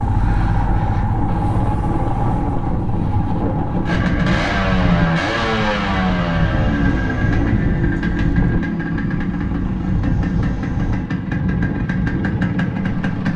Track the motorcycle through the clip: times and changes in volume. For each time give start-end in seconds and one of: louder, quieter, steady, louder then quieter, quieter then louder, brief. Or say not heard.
0.0-13.3 steady.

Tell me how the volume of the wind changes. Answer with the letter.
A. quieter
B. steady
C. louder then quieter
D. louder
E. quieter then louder
B.